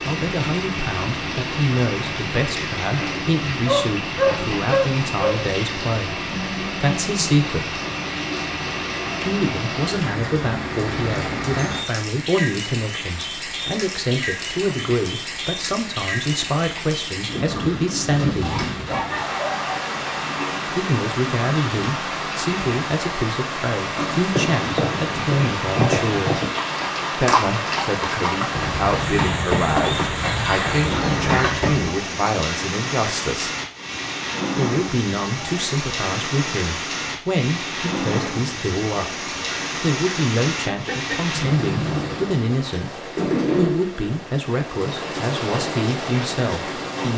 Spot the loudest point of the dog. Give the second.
4 s.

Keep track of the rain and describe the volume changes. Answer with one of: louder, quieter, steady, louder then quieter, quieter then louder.
steady.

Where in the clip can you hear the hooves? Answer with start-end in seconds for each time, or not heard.
24.3-31.9.